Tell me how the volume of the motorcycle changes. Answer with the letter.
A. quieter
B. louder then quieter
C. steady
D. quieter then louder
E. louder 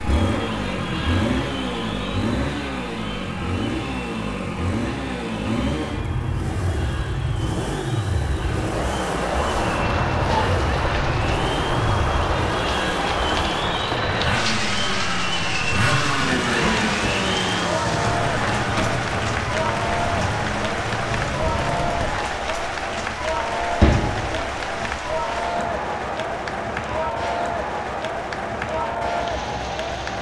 C.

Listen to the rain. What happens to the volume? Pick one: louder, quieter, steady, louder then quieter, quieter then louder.
quieter.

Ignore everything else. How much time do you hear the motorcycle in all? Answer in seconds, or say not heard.
22 s.